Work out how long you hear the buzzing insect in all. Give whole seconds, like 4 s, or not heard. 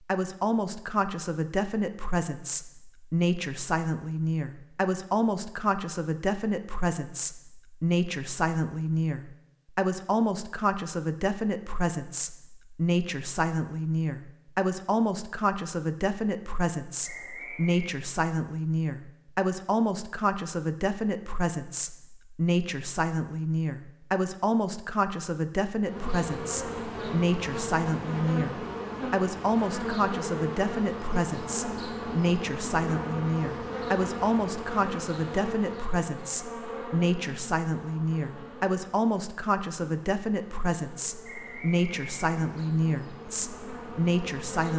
19 s.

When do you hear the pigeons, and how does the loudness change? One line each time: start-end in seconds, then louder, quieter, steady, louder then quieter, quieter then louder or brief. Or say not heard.
not heard.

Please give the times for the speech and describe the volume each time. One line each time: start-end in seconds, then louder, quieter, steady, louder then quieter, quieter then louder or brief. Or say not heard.
0.1-44.7 steady.